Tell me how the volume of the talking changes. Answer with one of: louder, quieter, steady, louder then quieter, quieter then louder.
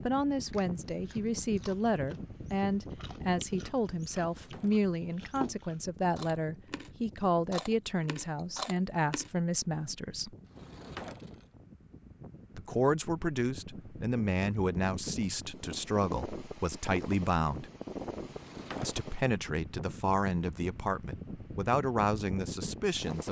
steady.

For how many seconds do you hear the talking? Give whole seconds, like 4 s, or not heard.
20 s.